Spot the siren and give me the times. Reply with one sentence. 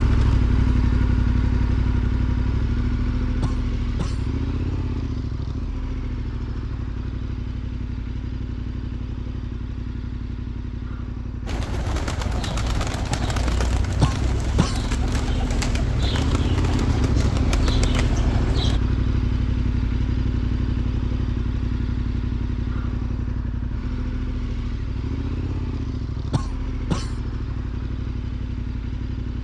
The siren can't be heard in this clip.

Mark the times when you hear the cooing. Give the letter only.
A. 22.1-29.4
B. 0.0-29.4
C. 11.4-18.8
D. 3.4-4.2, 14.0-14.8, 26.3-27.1
C.